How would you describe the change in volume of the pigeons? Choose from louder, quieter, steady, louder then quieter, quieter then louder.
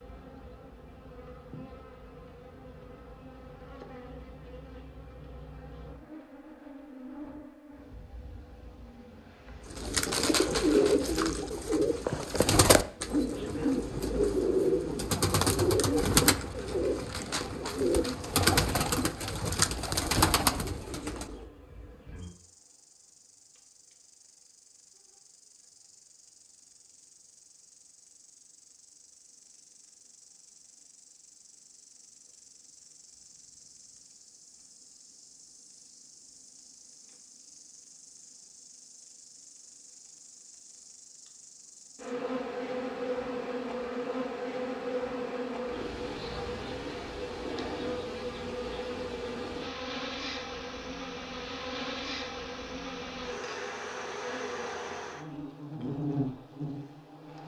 steady.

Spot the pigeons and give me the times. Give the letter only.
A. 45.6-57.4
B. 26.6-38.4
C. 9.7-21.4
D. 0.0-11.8
C.